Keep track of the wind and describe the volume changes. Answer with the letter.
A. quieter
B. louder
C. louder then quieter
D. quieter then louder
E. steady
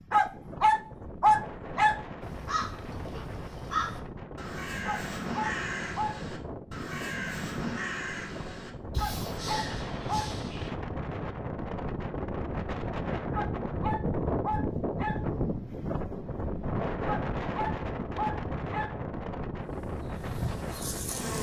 B.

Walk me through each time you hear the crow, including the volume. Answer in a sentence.
You can hear the crow from 2.2 to 10.7 s, at a steady volume.